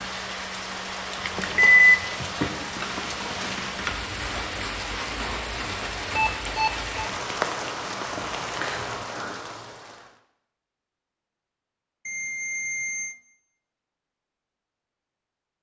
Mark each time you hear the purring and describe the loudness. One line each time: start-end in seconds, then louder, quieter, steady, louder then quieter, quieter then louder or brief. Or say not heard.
not heard.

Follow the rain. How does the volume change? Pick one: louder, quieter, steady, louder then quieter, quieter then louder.
steady.